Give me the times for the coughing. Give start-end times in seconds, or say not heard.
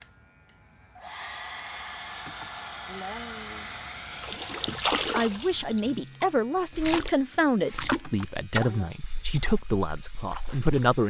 2.2-3.7, 8.0-8.9.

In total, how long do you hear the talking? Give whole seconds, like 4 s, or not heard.
6 s.